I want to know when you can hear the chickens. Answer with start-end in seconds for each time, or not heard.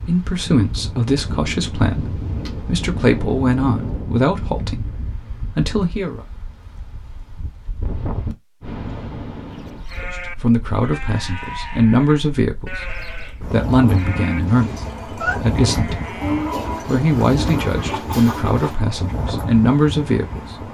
16.2-18.8.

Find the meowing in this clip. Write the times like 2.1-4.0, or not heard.
14.4-15.4.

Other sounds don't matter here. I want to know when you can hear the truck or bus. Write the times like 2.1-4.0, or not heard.
not heard.